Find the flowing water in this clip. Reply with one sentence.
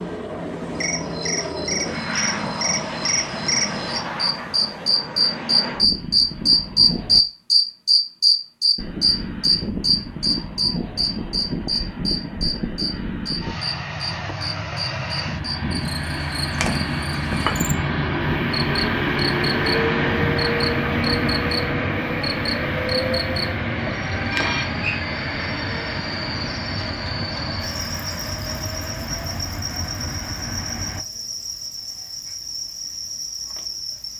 You can't hear the flowing water here.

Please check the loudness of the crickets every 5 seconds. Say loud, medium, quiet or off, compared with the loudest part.
medium, loud, medium, quiet, quiet, quiet, quiet.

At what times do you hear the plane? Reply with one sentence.
The plane can be heard from 0.0 to 7.2 s and from 8.8 to 31.1 s.